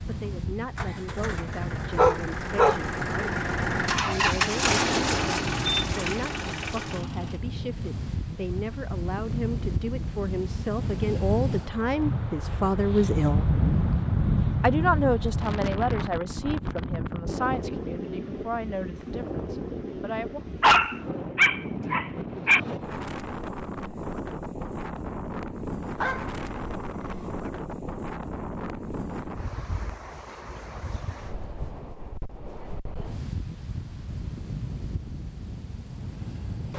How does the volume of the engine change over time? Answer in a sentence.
The volume of the engine goes up, then down.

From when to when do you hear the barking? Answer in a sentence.
You can hear the barking from 1.9 to 2.8 s, from 20.6 to 22.6 s and from 25.9 to 27.5 s.